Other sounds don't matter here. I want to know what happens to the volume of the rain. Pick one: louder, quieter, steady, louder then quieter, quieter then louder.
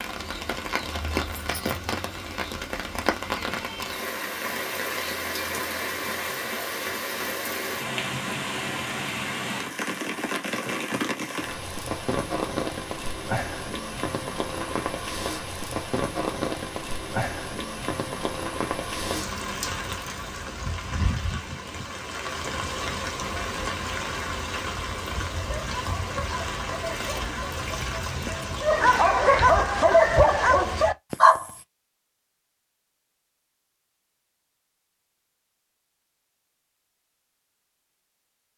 steady.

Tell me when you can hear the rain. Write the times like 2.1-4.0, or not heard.
0.0-30.9.